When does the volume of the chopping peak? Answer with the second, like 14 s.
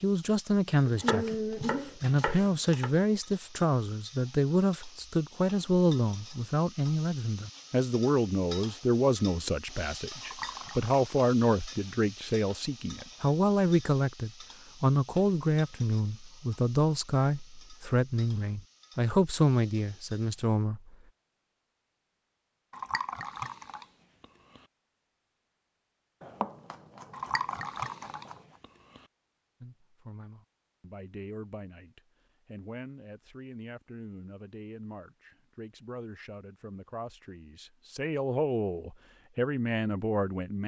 1 s.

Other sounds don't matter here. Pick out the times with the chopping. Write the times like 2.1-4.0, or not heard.
0.8-2.9, 26.2-28.4.